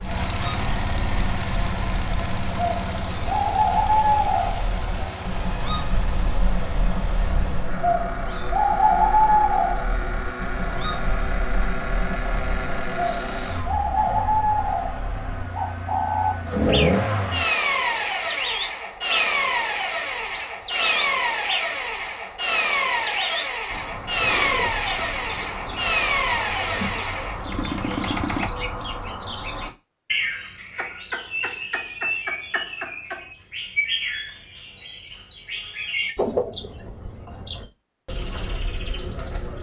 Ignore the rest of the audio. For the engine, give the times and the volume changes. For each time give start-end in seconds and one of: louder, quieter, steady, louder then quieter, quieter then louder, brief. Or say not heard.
0.0-28.5 louder.